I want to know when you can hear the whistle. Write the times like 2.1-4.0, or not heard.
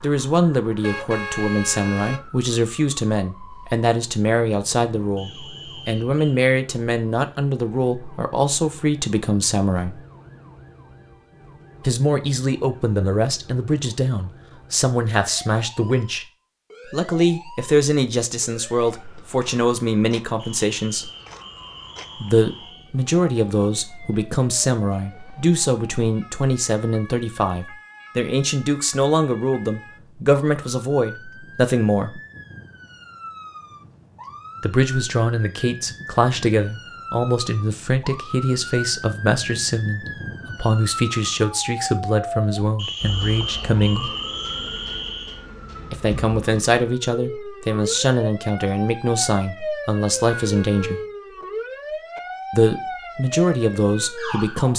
5.2-6.4, 20.4-22.9, 42.8-45.4.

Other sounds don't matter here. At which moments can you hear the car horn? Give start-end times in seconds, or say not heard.
0.8-2.3, 50.2-51.1.